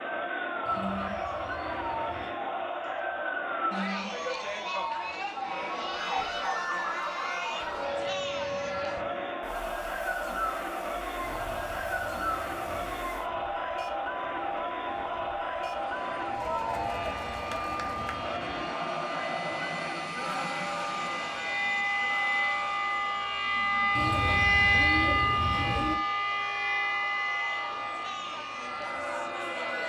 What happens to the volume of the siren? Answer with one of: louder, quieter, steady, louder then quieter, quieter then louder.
louder.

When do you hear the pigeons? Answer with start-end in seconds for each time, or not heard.
0.7-2.4, 11.2-13.1, 16.6-18.6, 23.9-25.9.